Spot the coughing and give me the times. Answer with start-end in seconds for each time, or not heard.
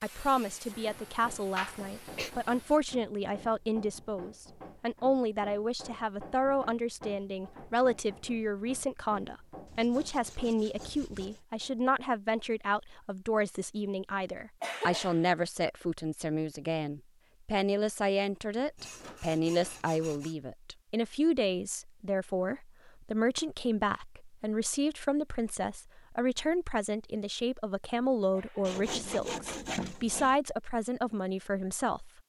1.6-2.3, 14.6-15.2, 28.3-28.8.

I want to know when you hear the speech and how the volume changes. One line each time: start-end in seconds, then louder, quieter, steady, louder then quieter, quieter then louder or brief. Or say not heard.
0.0-32.1 steady.